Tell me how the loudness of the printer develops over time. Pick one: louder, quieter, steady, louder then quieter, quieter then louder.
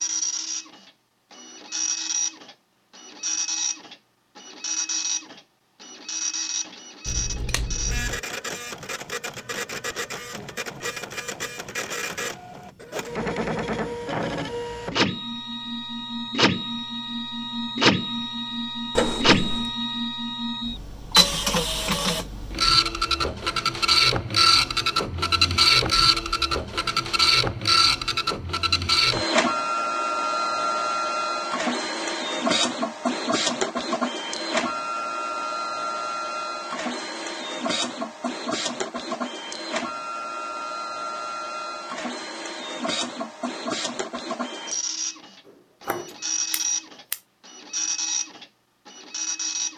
louder then quieter.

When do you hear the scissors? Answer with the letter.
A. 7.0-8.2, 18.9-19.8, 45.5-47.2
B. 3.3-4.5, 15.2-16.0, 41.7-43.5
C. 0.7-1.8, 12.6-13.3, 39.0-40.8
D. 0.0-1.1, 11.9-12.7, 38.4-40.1
A.